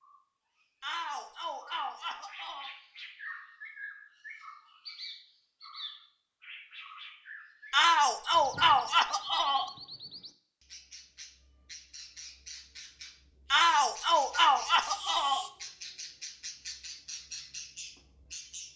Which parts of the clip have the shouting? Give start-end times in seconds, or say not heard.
0.8-2.7, 7.7-9.7, 13.5-15.5.